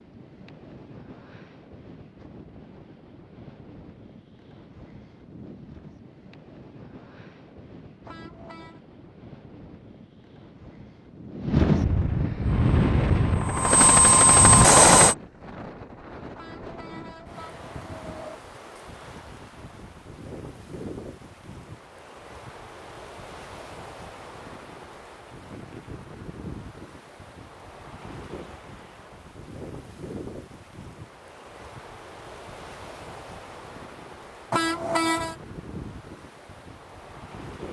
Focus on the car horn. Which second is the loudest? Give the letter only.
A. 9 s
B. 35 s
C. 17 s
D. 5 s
B.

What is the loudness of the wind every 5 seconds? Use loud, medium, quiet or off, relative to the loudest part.
quiet, quiet, loud, quiet, quiet, quiet, quiet, quiet.